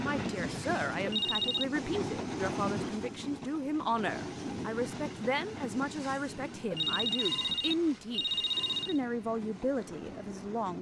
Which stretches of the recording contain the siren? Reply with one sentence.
The siren can't be heard in this clip.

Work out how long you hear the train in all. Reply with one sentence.
You can hear the train for 11 seconds altogether.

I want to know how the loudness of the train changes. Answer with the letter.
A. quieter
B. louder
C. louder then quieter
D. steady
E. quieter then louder
A.